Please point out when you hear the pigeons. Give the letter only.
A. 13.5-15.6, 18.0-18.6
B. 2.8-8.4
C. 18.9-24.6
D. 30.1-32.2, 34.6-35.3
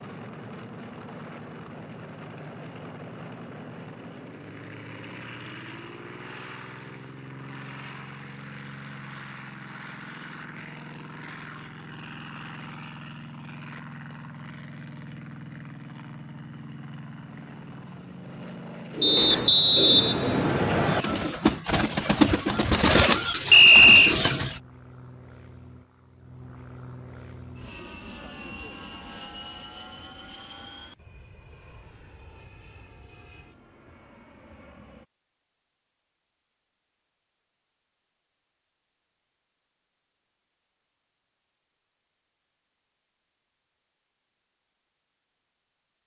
C.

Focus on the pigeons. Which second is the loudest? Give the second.
23 s.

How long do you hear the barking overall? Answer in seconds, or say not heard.
not heard.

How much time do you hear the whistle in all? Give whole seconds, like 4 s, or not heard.
3 s.